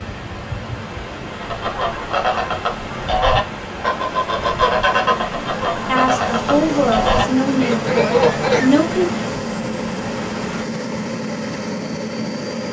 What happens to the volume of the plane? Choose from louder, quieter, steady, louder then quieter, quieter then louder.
louder.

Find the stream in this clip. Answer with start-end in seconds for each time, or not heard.
0.0-10.7.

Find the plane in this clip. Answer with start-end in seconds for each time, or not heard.
0.0-12.6.